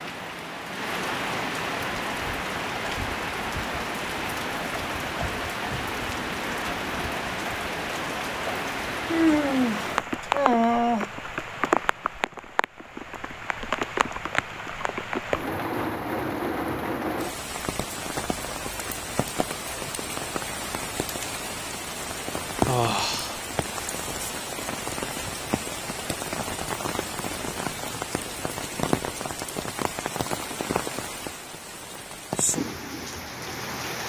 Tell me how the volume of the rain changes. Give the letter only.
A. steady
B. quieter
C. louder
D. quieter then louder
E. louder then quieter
A.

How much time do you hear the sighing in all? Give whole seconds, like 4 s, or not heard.
3 s.